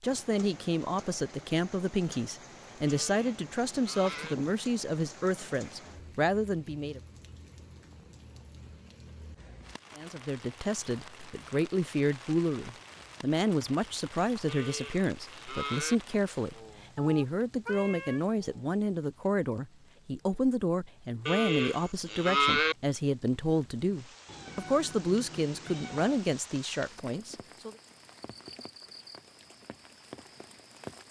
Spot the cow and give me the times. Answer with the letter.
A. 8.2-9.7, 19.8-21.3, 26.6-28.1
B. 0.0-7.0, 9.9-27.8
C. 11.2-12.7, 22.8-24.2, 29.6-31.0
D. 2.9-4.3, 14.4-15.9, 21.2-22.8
D.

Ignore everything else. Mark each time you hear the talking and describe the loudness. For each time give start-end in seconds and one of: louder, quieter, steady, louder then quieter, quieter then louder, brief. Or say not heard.
0.0-7.0 steady
9.9-27.8 steady.